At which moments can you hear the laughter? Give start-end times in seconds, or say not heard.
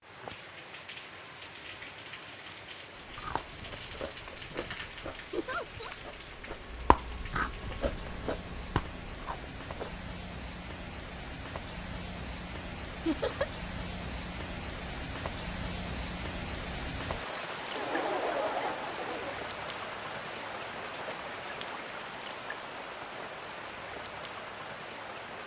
5.3-6.0, 13.1-13.5, 17.7-19.4.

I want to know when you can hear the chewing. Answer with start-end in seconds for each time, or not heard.
3.0-10.0.